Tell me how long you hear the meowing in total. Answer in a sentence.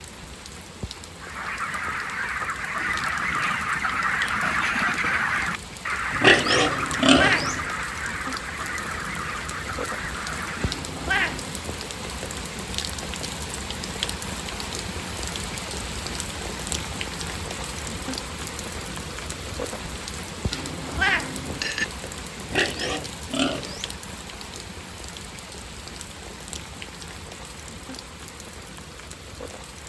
The meowing can be heard for 3 seconds in total.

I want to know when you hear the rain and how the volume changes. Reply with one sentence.
The rain can be heard from 0.0 to 29.8 s, getting louder then quieter.